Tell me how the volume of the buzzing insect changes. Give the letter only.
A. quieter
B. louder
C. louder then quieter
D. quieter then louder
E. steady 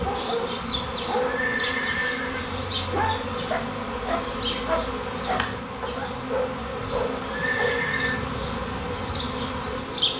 E.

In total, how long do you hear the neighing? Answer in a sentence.
You can hear the neighing for 2 seconds altogether.